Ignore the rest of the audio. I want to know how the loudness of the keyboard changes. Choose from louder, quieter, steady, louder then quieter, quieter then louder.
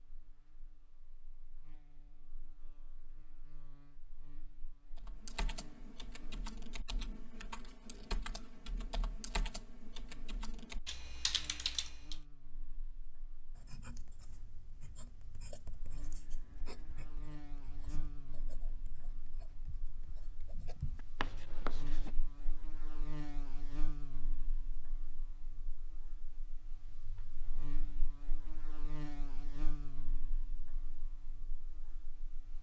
louder.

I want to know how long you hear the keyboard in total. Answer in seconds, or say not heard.
7 s.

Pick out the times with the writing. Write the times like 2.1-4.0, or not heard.
13.6-22.1.